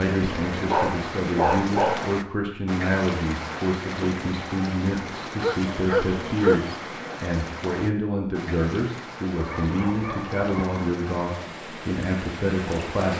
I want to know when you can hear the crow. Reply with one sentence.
You can't hear the crow here.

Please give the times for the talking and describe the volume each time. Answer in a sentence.
You can hear the talking from 0.0 to 13.1 s, at a steady volume.